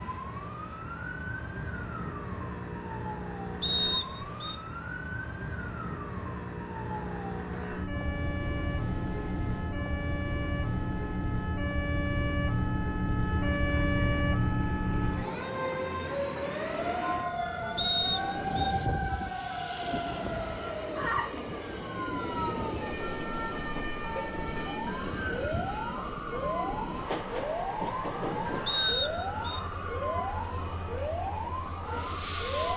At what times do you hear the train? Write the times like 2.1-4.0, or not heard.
7.8-32.7.